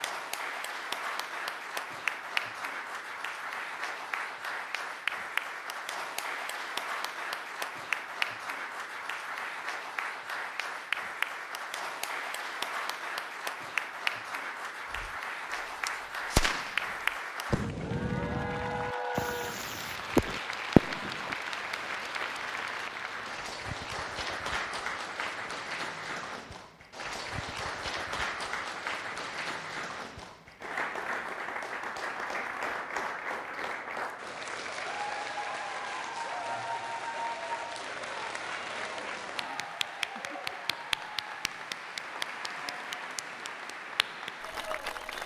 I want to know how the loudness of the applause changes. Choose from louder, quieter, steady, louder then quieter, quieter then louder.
steady.